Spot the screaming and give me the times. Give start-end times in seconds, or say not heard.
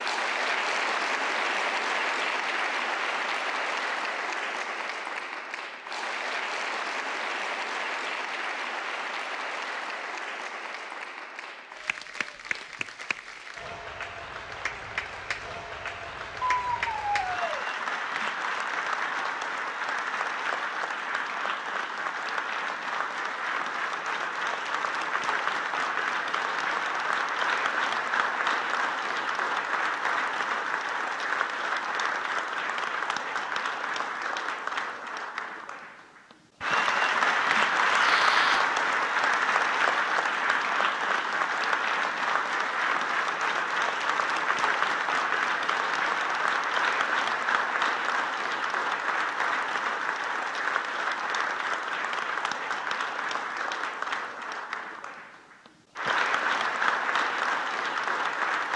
16.6-17.6, 37.9-38.6.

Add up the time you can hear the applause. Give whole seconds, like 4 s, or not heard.
59 s.